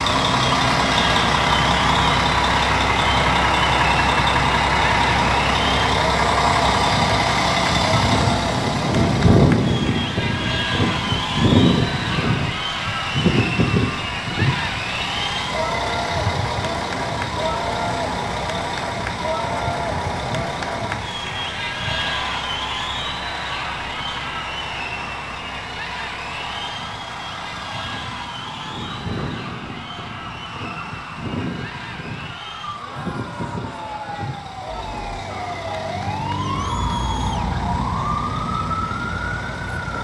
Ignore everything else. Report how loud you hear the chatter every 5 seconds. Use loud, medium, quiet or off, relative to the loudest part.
loud, loud, loud, loud, loud, medium, medium, medium.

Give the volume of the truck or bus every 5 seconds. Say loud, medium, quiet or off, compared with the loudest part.
loud, loud, loud, medium, quiet, quiet, quiet, quiet.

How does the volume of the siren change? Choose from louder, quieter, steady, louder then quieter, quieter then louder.
louder.